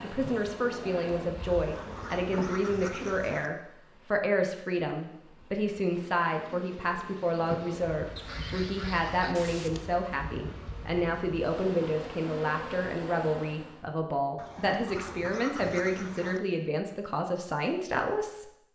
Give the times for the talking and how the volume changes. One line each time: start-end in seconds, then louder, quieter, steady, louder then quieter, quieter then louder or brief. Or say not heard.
0.0-18.4 steady.